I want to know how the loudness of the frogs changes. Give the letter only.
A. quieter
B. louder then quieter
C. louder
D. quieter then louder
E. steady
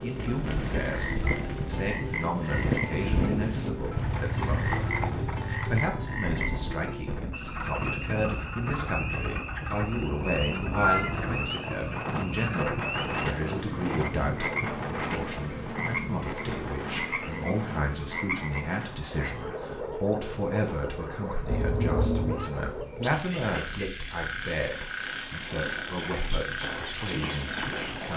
E.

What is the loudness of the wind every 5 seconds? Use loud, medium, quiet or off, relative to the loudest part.
loud, loud, loud, medium, quiet, medium.